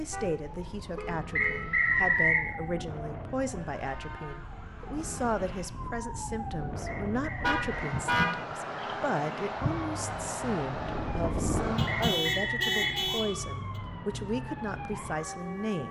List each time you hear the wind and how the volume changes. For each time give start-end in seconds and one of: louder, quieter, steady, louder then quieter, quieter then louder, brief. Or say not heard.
0.0-12.2 louder.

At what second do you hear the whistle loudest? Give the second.
2 s.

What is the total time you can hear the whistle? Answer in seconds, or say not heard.
3 s.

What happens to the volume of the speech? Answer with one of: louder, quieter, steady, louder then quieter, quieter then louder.
steady.